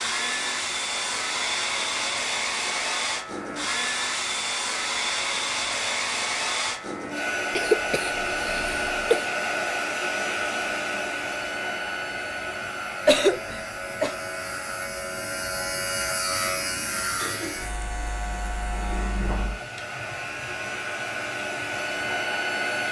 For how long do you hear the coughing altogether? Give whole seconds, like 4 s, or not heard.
3 s.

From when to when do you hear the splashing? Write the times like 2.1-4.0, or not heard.
not heard.